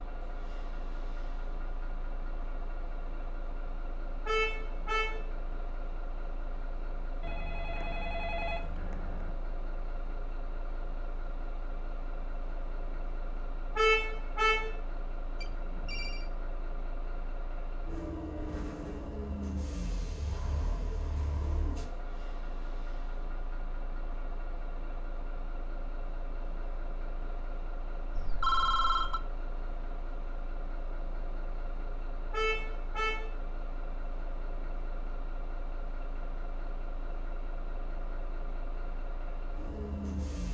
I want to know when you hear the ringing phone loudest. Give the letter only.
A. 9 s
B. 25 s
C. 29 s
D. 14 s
C.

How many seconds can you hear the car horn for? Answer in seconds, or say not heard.
3 s.